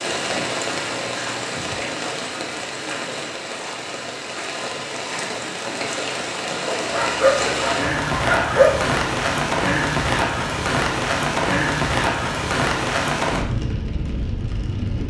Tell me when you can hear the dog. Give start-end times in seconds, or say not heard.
6.7-8.9.